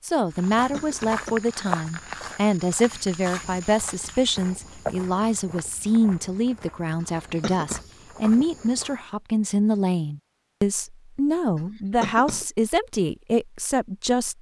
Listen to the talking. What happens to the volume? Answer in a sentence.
The loudness of the talking stays about the same.